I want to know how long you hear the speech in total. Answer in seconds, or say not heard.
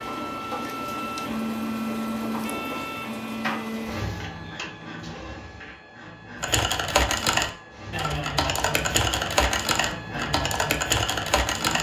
not heard.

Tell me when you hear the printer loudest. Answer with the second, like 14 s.
2 s.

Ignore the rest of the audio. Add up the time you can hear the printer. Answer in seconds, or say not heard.
12 s.